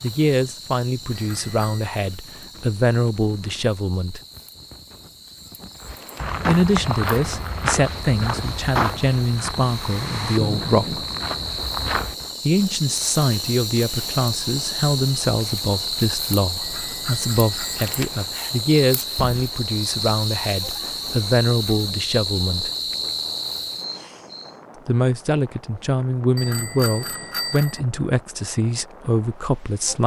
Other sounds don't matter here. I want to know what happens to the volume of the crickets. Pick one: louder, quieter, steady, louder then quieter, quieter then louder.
louder.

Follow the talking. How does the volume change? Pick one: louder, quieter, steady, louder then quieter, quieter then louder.
steady.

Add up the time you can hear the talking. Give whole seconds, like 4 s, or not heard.
24 s.